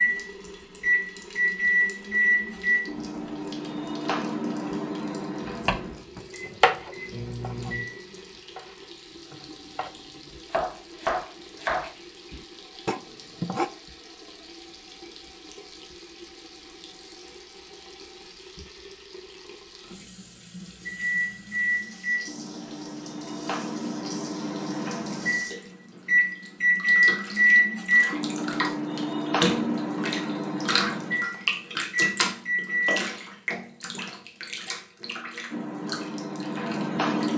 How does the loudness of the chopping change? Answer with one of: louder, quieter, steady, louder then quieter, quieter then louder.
quieter then louder.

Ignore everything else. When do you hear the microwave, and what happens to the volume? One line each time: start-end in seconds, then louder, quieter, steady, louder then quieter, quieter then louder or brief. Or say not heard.
0.0-8.2 quieter
20.9-33.0 louder then quieter
35.5-37.3 brief.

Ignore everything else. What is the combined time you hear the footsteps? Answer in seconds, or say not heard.
not heard.